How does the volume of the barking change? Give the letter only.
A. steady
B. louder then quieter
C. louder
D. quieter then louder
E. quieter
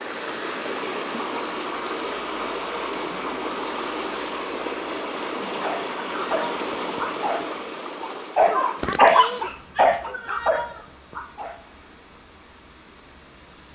B.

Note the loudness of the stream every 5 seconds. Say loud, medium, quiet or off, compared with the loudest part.
loud, loud, quiet.